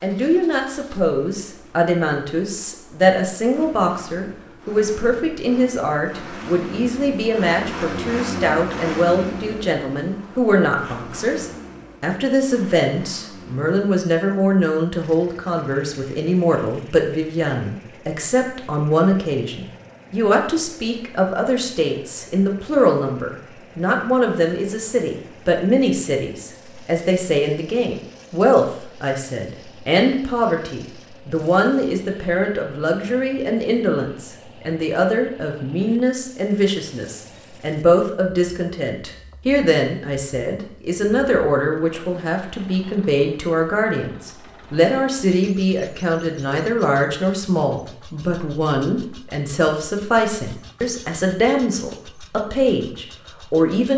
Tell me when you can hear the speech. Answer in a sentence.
You can hear the speech from 0.0 to 53.9 s.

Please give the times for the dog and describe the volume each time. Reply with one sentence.
The dog can't be heard in this clip.